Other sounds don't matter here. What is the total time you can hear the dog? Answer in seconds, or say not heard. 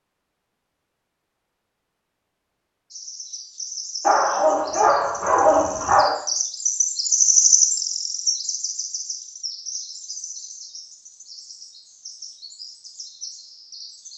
2 s.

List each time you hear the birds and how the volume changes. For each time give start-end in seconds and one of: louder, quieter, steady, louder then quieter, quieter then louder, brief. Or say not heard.
2.9-14.1 louder then quieter.